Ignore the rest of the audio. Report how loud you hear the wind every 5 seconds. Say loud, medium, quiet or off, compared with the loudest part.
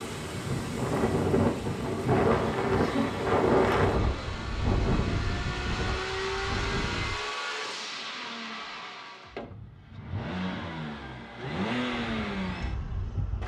loud, medium, off.